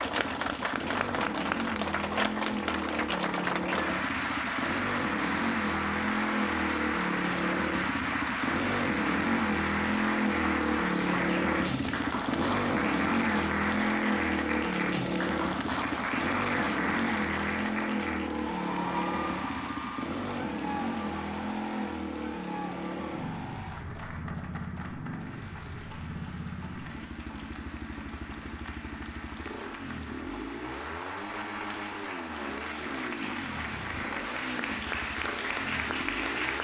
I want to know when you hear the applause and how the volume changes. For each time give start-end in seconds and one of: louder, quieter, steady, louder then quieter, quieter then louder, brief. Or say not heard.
0.0-36.5 quieter then louder.